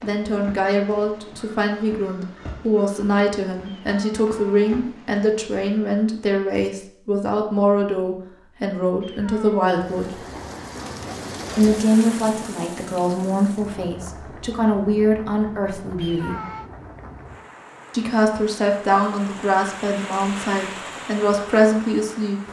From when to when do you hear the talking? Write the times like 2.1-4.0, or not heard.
0.0-10.2, 11.6-16.4, 17.9-22.4.